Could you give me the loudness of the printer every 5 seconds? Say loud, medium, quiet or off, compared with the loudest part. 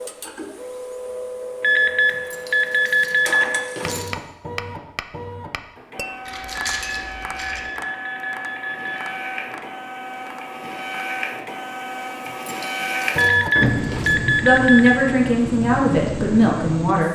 medium, medium, loud, loud.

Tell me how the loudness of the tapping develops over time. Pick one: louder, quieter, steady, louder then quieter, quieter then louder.
quieter.